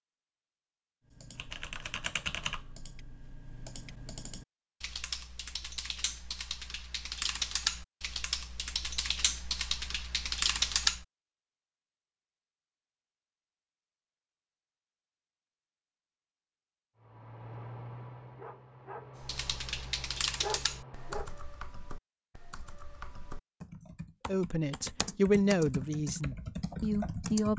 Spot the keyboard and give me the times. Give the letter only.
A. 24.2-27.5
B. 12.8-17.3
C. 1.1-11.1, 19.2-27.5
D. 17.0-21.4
C.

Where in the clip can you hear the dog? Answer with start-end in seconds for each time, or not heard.
17.0-21.4.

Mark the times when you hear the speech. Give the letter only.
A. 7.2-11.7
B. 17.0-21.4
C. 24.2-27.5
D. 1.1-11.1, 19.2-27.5
C.